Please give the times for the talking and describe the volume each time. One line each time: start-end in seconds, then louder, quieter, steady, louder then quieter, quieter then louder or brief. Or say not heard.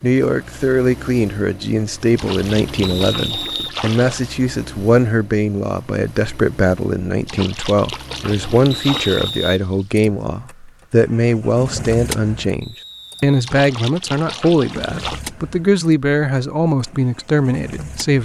0.0-18.1 steady.